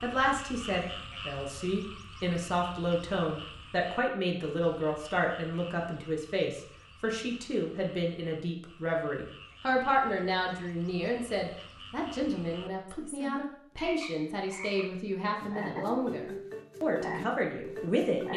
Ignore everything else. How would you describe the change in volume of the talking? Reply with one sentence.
The volume of the talking stays about the same.